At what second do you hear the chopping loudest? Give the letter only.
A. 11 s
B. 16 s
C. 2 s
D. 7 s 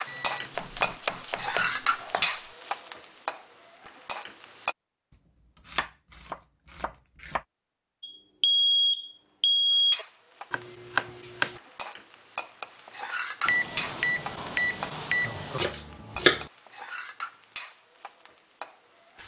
B.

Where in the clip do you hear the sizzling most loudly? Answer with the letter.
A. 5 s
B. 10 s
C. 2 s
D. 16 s
C.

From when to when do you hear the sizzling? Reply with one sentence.
You can hear the sizzling from 0.0 to 4.8 s and from 9.7 to 19.2 s.